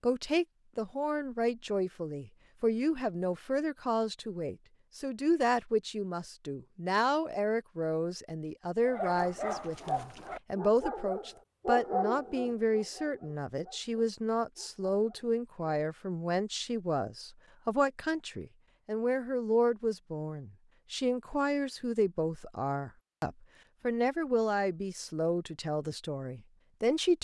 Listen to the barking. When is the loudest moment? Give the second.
12 s.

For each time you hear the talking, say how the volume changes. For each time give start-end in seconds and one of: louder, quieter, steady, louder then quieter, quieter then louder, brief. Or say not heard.
0.0-27.1 steady.